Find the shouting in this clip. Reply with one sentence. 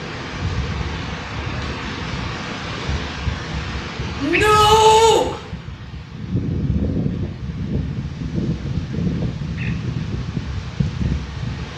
The shouting can be heard from 4.2 to 5.2 s.